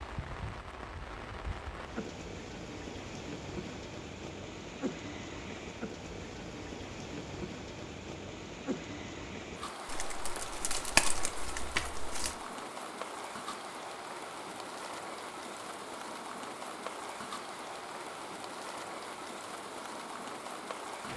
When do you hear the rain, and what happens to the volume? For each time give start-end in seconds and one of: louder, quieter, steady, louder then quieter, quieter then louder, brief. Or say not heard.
0.0-21.1 steady.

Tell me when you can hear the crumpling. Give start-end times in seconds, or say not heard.
9.8-12.3.